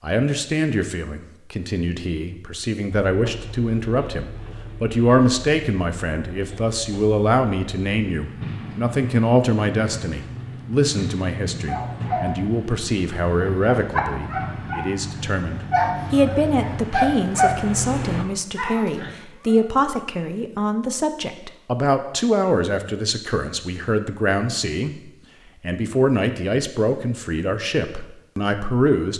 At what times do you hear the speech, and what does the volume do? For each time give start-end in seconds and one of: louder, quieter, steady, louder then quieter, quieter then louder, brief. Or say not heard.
0.0-29.1 steady.